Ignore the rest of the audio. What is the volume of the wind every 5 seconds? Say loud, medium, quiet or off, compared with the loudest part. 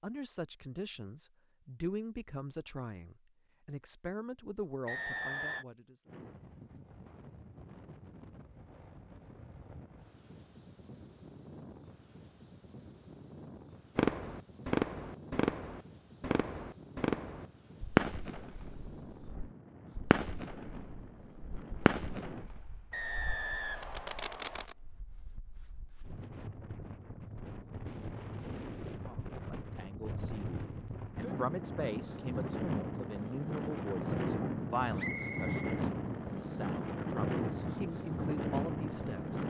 off, quiet, quiet, quiet, quiet, medium, loud, loud.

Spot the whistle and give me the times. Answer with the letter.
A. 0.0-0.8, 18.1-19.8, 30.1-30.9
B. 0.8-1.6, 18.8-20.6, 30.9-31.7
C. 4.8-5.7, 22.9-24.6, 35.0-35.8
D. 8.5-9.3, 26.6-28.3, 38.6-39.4
C.